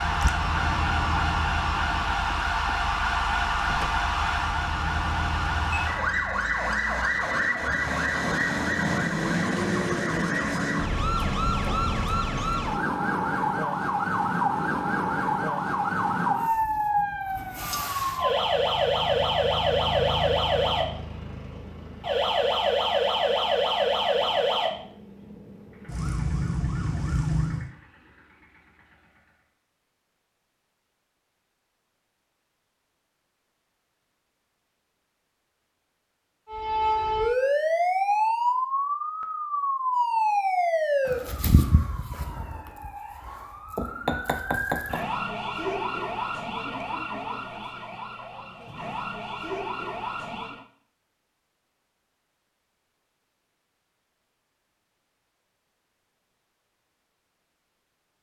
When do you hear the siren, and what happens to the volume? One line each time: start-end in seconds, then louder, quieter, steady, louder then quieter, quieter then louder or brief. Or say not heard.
0.0-27.7 steady
36.5-50.6 quieter.